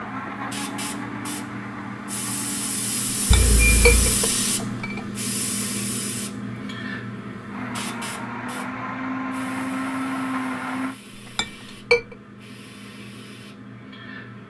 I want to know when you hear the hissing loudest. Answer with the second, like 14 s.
4 s.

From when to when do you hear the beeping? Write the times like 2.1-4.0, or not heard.
3.3-4.2.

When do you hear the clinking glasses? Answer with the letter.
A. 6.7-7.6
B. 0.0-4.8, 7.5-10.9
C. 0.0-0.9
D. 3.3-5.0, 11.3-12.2
D.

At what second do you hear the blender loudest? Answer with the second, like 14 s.
10 s.